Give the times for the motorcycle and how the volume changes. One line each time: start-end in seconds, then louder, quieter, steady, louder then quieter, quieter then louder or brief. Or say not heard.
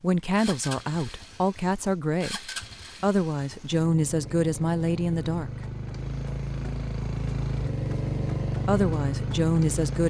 0.0-10.0 louder.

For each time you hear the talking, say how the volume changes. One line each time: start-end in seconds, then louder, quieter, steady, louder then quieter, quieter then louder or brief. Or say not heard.
0.0-5.5 steady
8.7-10.0 brief.